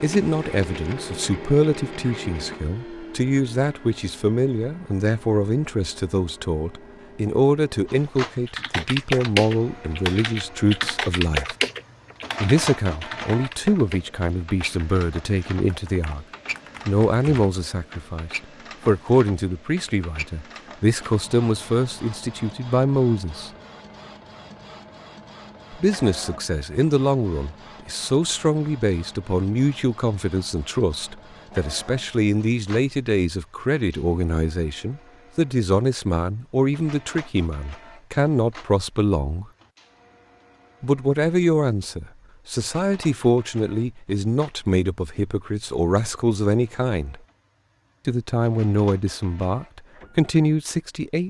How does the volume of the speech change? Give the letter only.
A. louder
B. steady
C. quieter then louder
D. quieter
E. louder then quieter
B.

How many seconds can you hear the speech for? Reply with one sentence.
You can hear the speech for 45 seconds altogether.